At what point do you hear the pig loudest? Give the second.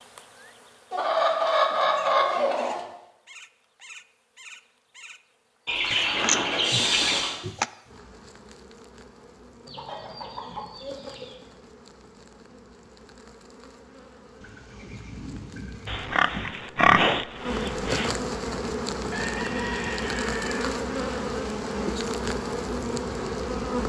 17 s.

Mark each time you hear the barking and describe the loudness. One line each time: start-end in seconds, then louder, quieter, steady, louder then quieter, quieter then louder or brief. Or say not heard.
not heard.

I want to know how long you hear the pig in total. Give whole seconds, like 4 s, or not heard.
4 s.